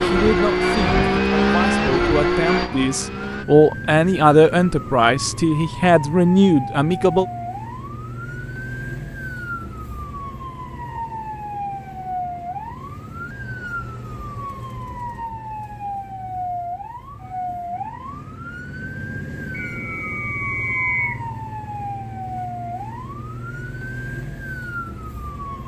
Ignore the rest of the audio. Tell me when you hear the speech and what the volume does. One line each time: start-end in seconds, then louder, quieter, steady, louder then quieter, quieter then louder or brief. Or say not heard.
0.0-7.2 louder.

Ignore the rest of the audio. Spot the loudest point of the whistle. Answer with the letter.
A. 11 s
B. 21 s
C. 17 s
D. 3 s
B.